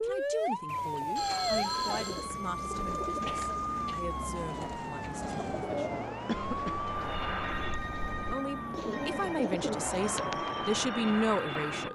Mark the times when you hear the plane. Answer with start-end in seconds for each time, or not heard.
6.8-11.8.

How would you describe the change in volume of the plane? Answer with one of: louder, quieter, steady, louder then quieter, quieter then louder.
quieter then louder.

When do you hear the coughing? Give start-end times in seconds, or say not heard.
3.2-4.2, 6.2-6.8.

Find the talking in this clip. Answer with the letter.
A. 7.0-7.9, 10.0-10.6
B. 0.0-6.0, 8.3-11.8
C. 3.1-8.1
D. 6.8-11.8
B.